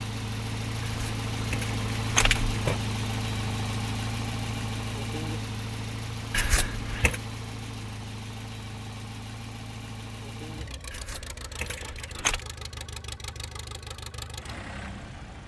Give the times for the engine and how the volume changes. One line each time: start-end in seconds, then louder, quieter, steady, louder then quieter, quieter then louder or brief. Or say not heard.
0.0-15.4 quieter.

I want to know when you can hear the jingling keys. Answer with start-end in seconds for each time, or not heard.
0.8-2.8, 6.3-7.2, 10.9-12.4.